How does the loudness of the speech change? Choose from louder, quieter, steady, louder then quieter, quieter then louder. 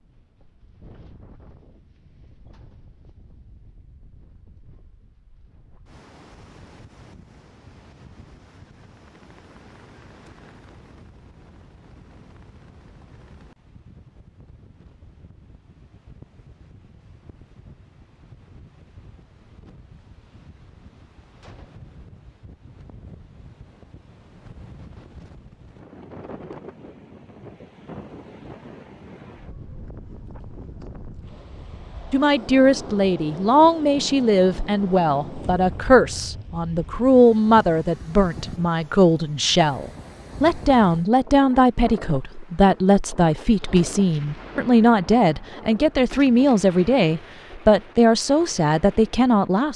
steady.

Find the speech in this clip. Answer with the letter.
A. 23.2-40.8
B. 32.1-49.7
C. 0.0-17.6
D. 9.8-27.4
B.